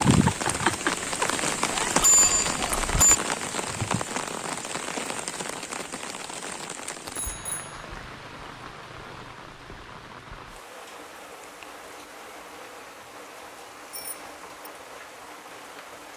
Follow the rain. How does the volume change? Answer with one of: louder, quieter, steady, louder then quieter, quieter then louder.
quieter.